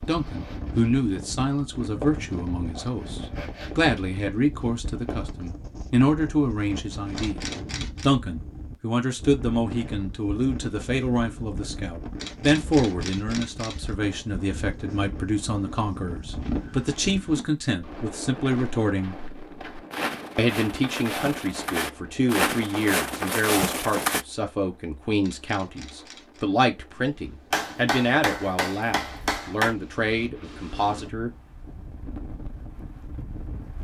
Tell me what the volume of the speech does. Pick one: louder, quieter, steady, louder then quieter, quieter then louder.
steady.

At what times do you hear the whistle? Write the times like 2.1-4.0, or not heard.
not heard.